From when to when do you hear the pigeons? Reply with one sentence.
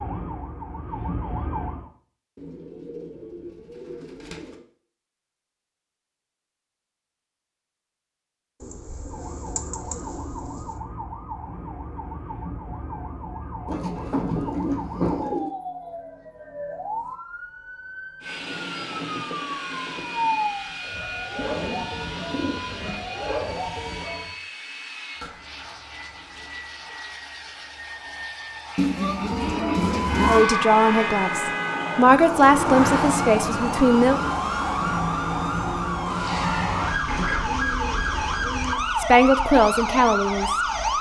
You can hear the pigeons from 2.4 to 4.7 s, from 8.6 to 10.8 s, from 13.7 to 15.5 s, from 21.4 to 23.1 s, from 28.8 to 30.4 s and from 37.0 to 38.8 s.